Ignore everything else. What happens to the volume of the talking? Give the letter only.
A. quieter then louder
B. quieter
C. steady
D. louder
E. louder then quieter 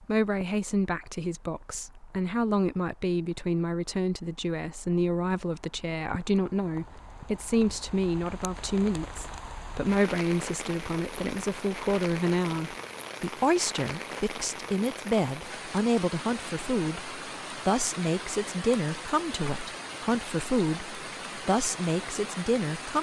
C.